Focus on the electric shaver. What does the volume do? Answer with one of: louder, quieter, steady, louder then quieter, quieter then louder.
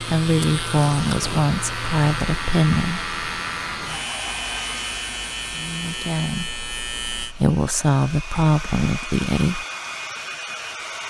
steady.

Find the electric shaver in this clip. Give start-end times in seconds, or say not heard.
0.0-7.3.